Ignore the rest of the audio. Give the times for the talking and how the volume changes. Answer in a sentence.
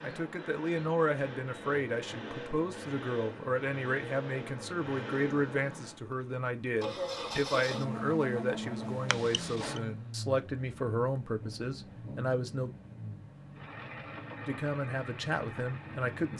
The talking can be heard from 0.0 to 12.8 s, at a steady volume; and briefly from 14.4 to 16.3 s.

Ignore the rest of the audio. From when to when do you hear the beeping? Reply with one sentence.
You can hear the beeping from 9.1 to 9.8 s.